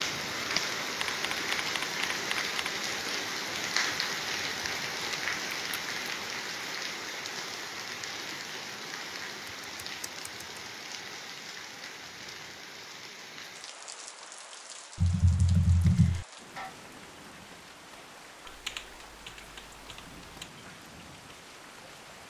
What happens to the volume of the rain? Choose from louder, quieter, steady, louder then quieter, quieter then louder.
quieter.